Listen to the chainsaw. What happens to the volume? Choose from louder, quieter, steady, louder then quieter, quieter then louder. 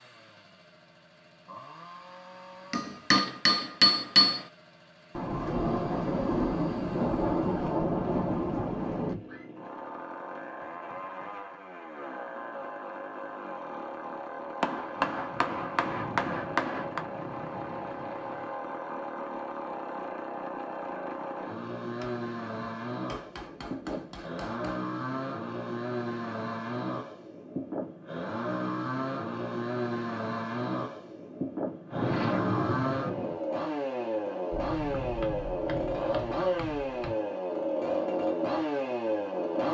louder.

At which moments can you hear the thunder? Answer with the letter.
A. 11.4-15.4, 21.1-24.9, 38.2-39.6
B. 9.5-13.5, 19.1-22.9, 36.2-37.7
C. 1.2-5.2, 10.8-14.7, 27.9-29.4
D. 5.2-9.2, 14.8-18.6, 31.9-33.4
D.